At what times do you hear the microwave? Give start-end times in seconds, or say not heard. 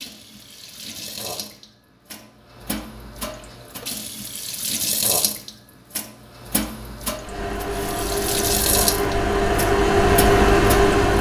7.2-11.1.